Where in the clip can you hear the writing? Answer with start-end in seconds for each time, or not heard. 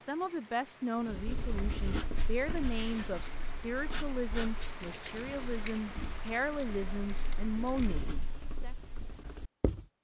1.1-9.8.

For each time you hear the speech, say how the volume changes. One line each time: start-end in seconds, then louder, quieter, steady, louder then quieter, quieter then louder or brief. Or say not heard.
0.0-8.8 steady.